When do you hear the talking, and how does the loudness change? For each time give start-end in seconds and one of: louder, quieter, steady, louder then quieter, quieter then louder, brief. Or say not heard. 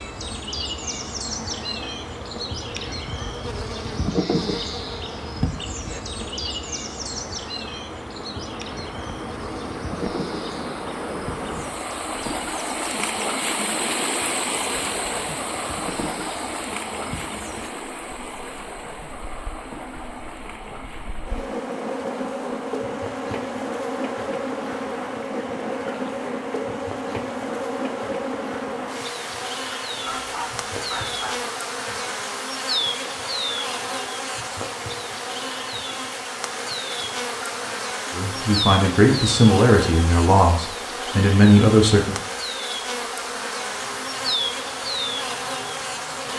38.1-42.1 quieter then louder.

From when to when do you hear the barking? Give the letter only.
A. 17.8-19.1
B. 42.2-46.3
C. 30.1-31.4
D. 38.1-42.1
C.